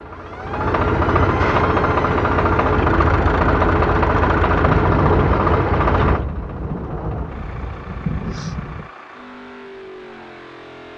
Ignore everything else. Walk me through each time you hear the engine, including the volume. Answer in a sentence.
The engine can be heard from 0.0 to 10.9 s, getting quieter.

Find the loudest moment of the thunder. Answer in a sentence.
The volume of the thunder peaks at 5 seconds.